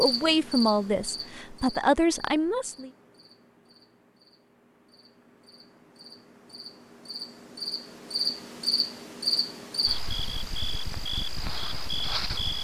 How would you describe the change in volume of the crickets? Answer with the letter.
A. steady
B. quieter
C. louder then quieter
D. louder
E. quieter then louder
E.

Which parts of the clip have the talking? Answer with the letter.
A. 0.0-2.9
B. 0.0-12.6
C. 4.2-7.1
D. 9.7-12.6
A.